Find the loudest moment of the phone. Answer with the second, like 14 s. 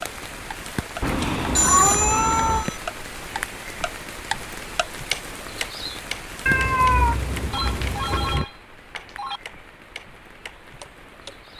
2 s.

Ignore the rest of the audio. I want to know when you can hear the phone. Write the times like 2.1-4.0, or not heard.
1.2-2.8, 7.5-9.4.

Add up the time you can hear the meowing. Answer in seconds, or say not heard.
4 s.